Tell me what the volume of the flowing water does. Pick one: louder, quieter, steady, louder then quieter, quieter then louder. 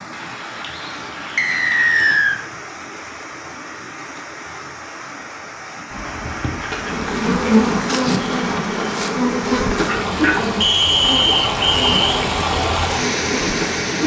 louder.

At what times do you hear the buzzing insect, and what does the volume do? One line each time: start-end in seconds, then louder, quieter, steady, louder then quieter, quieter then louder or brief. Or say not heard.
6.8-14.0 quieter.